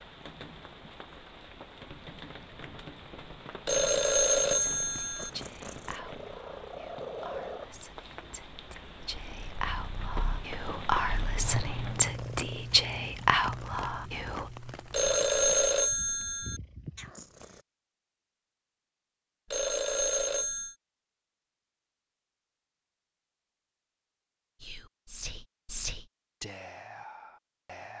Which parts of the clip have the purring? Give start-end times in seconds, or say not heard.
4.4-17.6.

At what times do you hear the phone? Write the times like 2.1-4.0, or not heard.
3.6-5.3, 14.9-16.6, 19.5-20.8.